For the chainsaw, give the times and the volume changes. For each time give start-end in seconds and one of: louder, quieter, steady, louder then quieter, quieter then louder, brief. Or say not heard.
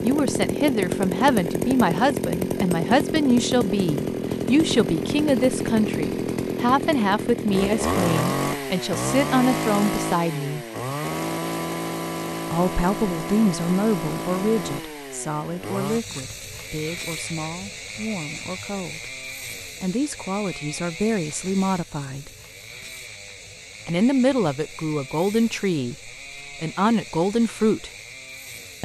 0.0-28.8 quieter.